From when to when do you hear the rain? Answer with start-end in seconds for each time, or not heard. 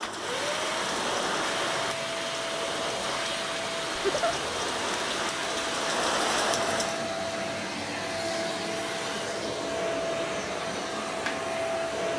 0.0-7.0.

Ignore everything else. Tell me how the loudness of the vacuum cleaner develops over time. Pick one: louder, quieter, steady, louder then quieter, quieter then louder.
steady.